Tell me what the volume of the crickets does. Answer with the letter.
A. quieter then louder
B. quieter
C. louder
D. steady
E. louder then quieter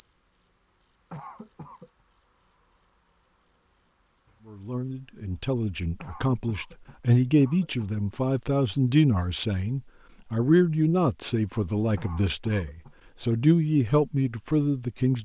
B.